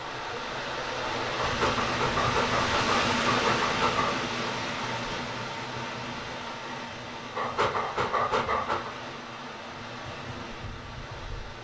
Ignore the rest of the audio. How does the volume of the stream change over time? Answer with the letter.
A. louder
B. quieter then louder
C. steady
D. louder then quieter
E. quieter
E.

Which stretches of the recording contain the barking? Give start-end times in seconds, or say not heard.
1.4-4.2, 7.3-8.9.